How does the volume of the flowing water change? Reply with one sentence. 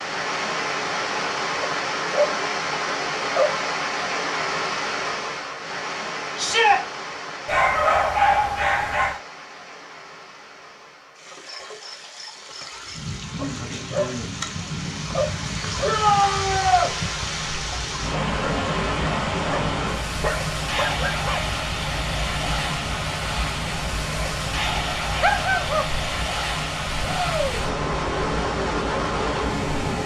The volume of the flowing water goes down, then up.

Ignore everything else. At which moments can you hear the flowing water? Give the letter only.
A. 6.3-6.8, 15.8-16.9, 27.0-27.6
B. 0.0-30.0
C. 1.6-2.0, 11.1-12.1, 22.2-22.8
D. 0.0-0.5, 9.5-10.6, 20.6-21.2
B.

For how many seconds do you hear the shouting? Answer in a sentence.
You can hear the shouting for 2 seconds altogether.